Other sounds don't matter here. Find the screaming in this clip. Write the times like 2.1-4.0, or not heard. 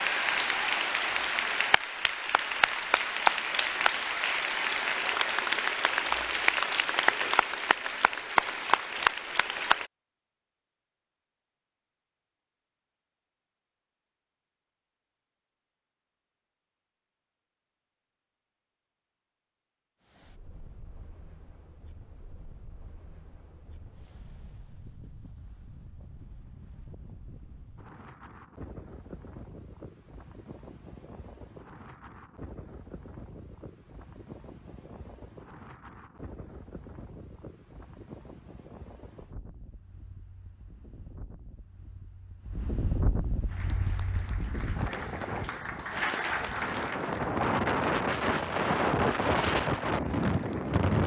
not heard.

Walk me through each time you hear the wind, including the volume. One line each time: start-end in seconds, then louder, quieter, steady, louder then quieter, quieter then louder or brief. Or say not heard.
20.0-51.0 louder.